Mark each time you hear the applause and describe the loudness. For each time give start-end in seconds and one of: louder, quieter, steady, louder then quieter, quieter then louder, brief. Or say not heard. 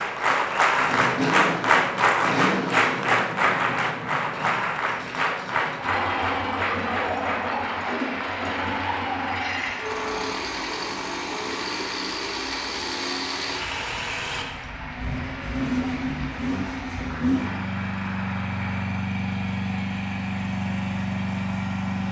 0.0-19.1 quieter.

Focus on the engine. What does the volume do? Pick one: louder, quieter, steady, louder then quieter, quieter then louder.
steady.